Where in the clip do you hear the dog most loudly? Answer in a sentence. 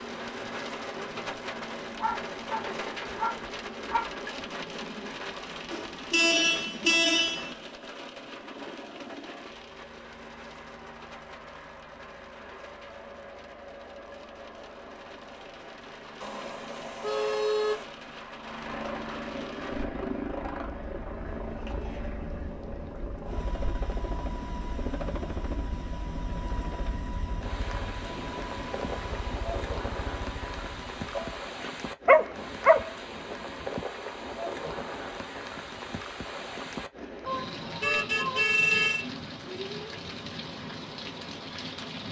The loudest moment of the dog is at 32 seconds.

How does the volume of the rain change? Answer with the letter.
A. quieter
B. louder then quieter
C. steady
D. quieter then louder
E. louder
D.